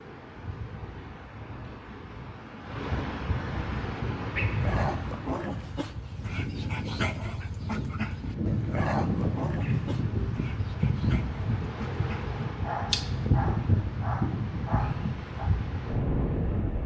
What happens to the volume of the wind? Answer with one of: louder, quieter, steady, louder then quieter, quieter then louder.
louder.